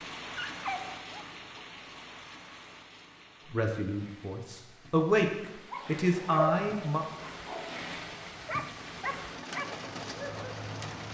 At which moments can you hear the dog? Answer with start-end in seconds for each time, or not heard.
0.3-1.4, 5.7-11.0.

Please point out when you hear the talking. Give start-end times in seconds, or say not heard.
3.5-7.0.